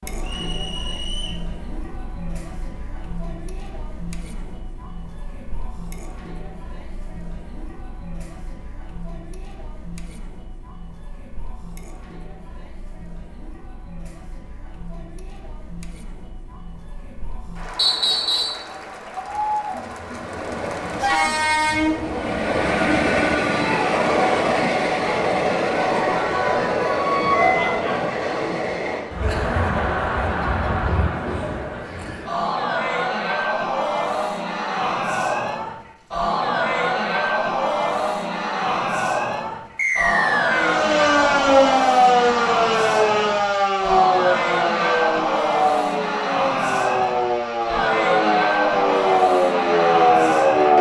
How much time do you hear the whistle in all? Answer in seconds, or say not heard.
3 s.